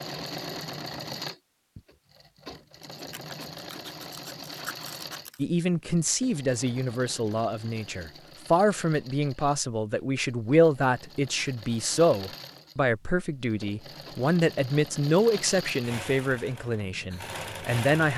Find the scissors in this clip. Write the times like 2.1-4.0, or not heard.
3.0-5.5.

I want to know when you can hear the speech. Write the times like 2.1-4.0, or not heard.
5.3-18.1.